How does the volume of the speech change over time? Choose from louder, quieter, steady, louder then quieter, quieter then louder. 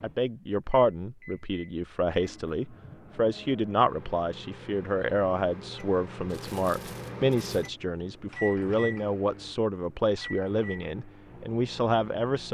steady.